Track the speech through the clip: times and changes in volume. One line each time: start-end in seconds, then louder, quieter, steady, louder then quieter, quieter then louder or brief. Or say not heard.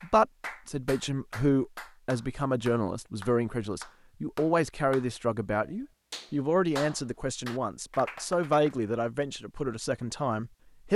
0.0-10.9 steady.